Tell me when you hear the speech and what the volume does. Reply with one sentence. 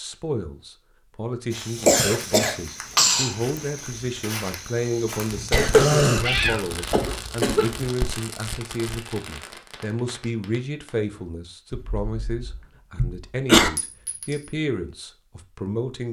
You can hear the speech from 0.0 to 16.0 s, at a steady volume.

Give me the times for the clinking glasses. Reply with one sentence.
You can hear the clinking glasses from 13.8 to 14.6 s.